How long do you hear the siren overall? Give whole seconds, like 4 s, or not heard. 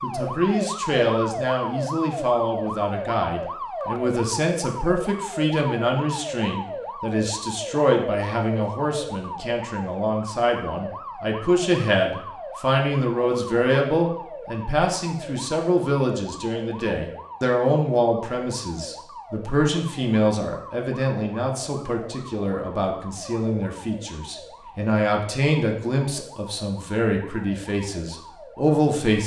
29 s.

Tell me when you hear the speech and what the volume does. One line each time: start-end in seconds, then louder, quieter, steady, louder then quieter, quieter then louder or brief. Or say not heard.
0.0-29.2 steady.